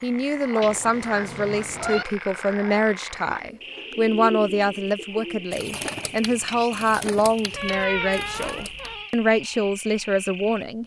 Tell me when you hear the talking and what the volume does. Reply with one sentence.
The talking can be heard from 0.0 to 10.8 s, at a steady volume.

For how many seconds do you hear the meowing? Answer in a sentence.
The meowing can be heard for 3 seconds in total.